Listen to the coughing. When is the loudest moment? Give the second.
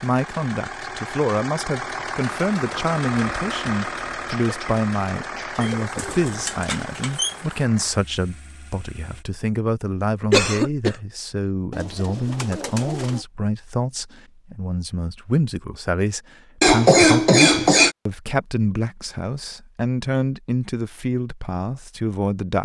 17 s.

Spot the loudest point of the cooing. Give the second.
7 s.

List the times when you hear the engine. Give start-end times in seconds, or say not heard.
0.0-9.2.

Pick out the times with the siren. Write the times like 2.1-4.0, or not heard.
not heard.